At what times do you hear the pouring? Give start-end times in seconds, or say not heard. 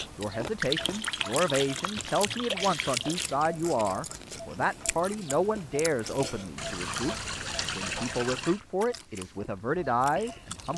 0.6-3.4, 6.5-8.6.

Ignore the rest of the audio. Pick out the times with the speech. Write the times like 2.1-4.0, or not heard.
0.1-10.7.